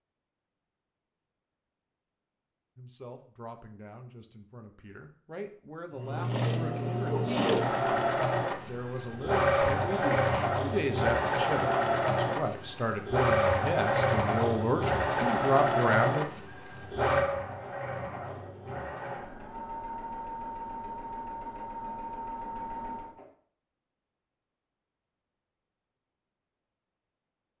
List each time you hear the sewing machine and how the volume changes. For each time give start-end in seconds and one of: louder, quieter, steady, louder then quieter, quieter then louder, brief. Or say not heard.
6.0-23.2 quieter.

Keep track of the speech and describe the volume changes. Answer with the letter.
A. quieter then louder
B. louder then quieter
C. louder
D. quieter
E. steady
C.